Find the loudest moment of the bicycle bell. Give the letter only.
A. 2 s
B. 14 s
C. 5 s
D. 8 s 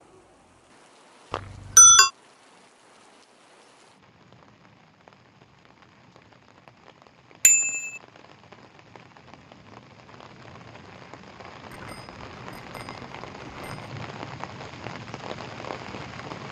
A.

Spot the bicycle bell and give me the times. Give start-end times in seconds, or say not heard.
1.3-2.1, 7.4-7.9, 11.7-13.8.